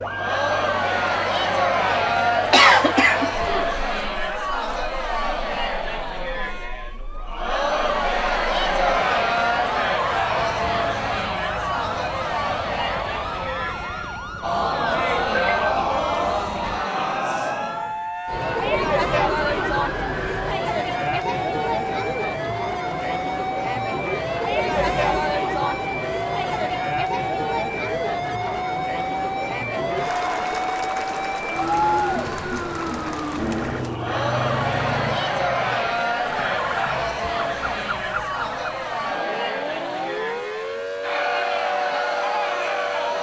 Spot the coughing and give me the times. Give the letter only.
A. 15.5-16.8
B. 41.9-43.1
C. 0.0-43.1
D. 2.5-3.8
D.